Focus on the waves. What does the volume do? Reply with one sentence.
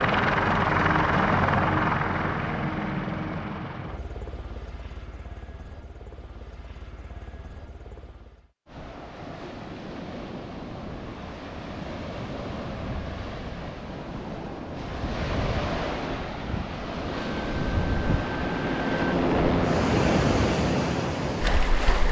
The volume of the waves goes up.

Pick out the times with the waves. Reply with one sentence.
The waves can be heard from 8.7 to 22.0 s.